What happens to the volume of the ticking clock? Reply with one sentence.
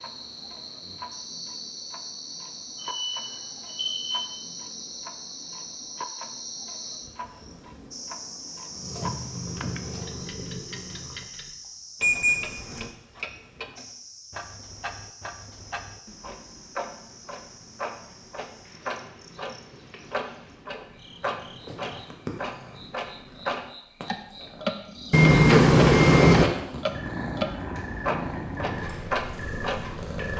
The volume of the ticking clock goes up.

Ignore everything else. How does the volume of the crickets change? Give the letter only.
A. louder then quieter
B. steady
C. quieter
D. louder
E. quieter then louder
C.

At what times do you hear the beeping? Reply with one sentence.
The beeping can be heard from 2.8 to 4.2 s, from 12.0 to 12.8 s and from 25.1 to 26.4 s.